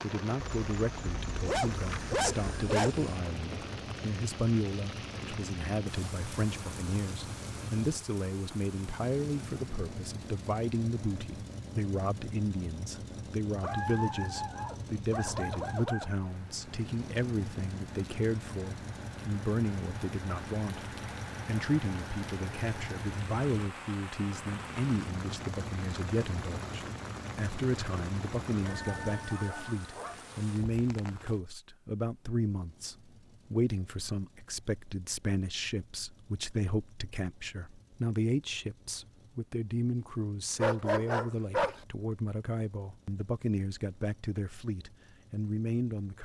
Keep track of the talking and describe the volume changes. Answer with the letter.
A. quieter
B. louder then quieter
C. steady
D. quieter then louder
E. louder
C.